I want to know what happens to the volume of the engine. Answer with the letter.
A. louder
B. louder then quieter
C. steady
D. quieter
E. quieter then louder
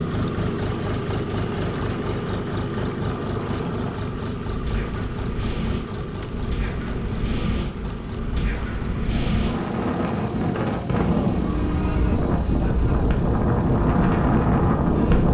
D.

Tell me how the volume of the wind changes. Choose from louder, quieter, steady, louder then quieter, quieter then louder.
louder.